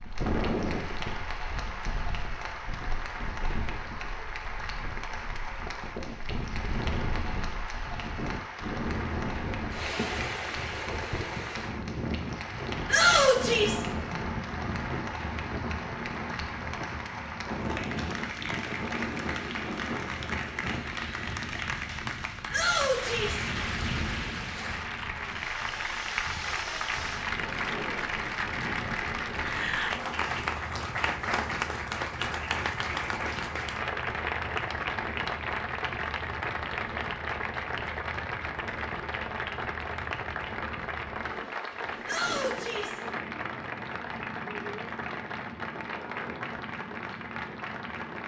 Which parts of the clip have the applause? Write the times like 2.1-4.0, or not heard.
0.0-48.2.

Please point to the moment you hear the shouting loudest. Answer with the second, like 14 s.
13 s.